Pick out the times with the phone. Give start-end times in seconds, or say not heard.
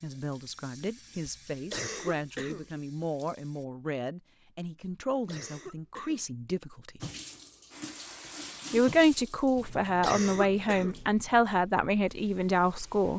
not heard.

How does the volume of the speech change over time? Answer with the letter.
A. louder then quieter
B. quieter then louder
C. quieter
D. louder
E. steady
D.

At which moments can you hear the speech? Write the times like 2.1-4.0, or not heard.
0.0-7.0, 8.7-13.1.